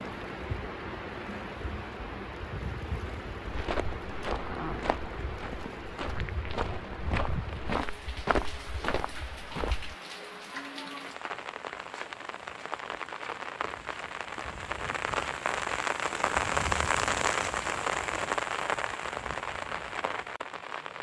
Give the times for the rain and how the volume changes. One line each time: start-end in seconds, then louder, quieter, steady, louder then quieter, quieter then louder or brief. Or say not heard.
0.0-20.9 louder.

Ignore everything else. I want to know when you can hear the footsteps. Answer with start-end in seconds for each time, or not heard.
3.5-9.9.